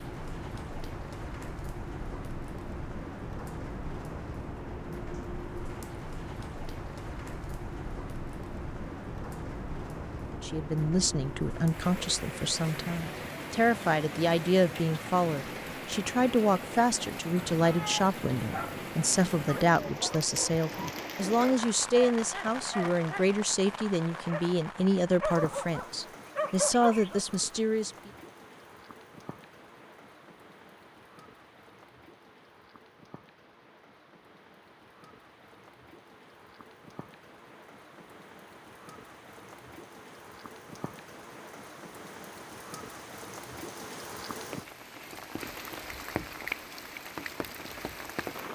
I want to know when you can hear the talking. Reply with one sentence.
The talking can be heard from 10.4 to 28.1 s.